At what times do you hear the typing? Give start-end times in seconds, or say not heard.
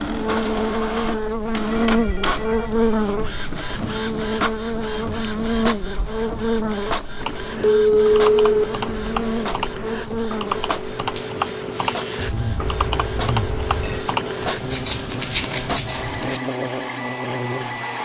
7.2-14.6.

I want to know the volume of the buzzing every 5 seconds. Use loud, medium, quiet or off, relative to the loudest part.
loud, loud, medium, medium.